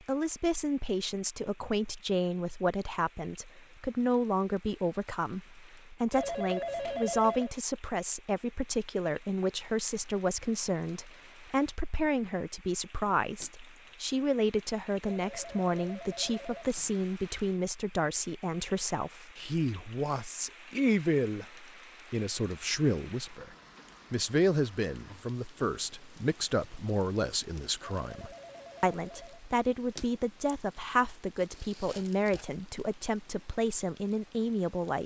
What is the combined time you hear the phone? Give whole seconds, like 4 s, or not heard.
5 s.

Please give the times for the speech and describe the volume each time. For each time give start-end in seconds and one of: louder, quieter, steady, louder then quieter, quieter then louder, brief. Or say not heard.
0.1-35.0 steady.